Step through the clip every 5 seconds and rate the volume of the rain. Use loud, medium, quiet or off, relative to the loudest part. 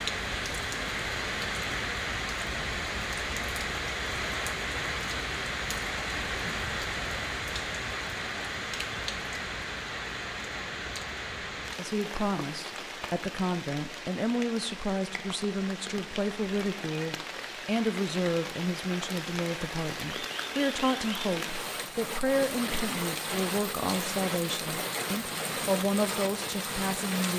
loud, loud, medium, medium, loud, loud.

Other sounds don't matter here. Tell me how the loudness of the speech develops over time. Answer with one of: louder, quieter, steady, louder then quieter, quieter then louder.
steady.